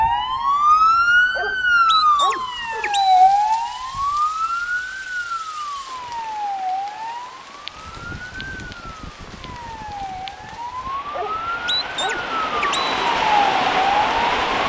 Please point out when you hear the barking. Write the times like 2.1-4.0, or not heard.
0.9-3.3, 10.7-12.9.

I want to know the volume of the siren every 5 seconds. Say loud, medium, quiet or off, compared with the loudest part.
loud, quiet, medium.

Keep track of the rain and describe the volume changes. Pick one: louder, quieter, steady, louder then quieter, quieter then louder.
louder.